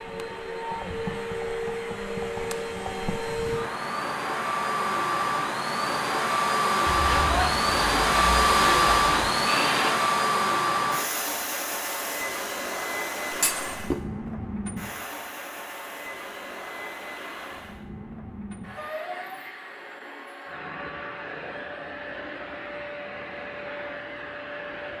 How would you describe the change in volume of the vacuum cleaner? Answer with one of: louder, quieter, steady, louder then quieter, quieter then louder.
louder then quieter.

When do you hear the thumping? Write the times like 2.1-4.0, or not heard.
13.3-13.9.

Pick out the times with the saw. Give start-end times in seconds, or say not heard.
6.8-9.9.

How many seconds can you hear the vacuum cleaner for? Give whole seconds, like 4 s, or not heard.
25 s.